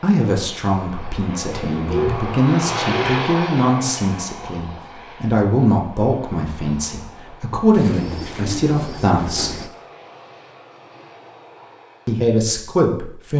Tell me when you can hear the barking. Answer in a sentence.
You can't hear the barking here.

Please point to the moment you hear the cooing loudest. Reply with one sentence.
The volume of the cooing peaks at 2 seconds.